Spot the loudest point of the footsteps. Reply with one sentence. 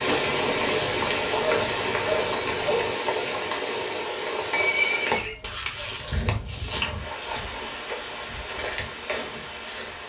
The loudest moment of the footsteps is at 9 seconds.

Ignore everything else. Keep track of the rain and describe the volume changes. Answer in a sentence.
The volume of the rain goes down.